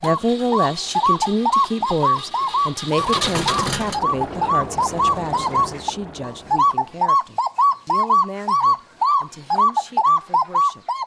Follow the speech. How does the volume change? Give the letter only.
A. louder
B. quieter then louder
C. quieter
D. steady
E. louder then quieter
C.